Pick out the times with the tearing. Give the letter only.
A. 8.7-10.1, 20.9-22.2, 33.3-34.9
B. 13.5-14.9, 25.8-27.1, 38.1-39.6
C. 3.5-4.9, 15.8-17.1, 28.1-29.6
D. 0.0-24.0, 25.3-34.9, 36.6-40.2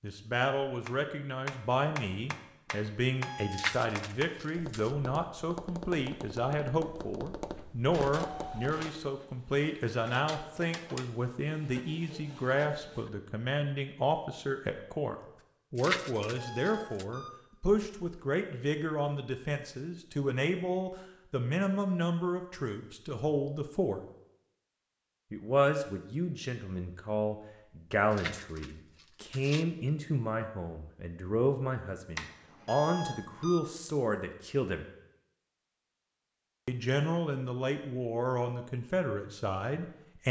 C.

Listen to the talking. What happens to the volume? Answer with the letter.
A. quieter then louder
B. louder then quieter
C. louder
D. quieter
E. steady
E.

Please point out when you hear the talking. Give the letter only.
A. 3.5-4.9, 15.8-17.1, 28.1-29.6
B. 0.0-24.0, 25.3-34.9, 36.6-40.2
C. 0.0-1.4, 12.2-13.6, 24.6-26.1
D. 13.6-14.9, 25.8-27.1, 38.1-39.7
B.